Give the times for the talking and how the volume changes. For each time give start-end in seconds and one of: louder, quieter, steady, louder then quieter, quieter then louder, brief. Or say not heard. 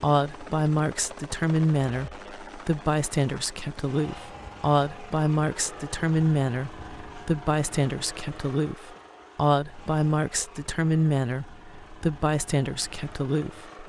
0.0-13.8 steady.